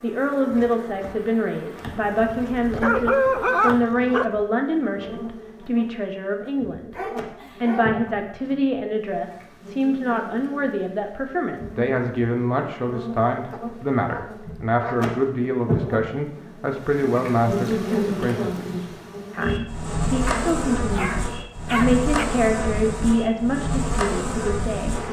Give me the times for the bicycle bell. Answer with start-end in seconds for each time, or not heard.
not heard.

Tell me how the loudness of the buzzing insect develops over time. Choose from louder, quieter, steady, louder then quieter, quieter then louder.
louder.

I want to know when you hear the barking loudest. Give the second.
3 s.